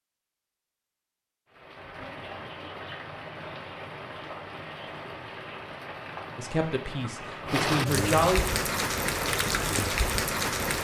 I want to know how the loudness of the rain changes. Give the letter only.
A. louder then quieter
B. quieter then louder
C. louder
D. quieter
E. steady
C.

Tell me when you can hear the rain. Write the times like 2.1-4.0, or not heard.
1.5-10.7.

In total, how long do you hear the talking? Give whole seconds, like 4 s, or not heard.
2 s.